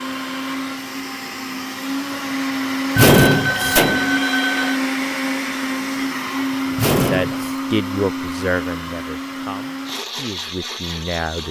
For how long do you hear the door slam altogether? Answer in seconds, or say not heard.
2 s.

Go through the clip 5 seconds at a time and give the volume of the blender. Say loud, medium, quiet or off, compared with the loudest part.
loud, loud, medium.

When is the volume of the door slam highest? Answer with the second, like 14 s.
3 s.